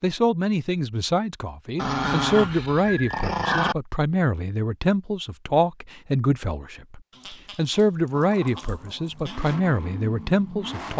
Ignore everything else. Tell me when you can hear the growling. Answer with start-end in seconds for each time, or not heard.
1.8-3.8, 7.1-9.4.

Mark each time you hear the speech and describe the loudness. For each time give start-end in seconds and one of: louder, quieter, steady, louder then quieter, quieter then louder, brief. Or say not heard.
0.0-10.9 steady.